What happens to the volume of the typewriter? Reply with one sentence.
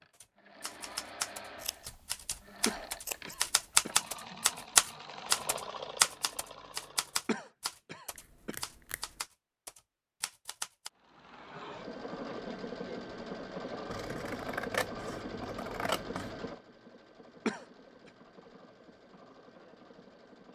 The volume of the typewriter goes up, then down.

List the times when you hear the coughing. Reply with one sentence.
You can hear the coughing from 2.6 to 3.9 s, from 7.2 to 8.6 s and from 17.4 to 18.1 s.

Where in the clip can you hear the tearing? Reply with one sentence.
You can't hear the tearing here.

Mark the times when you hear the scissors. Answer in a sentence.
The scissors can be heard from 1.6 to 3.5 s, from 8.2 to 9.2 s and from 13.9 to 16.5 s.